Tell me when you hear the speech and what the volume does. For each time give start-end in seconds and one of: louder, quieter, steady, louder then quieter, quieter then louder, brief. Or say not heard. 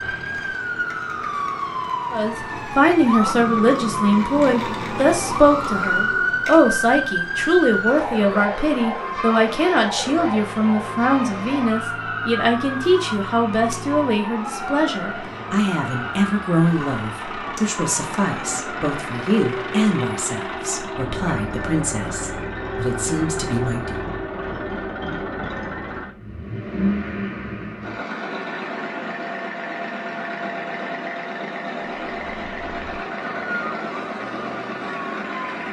2.1-24.0 quieter.